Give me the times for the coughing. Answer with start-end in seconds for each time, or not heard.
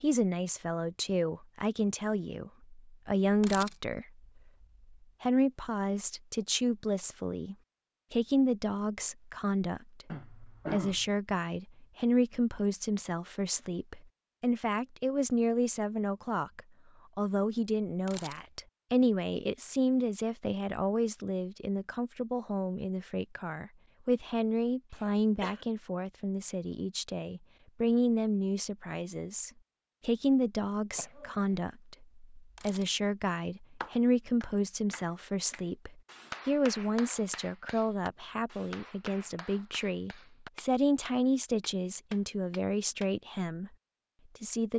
10.1-11.1, 24.9-25.6, 30.9-31.6.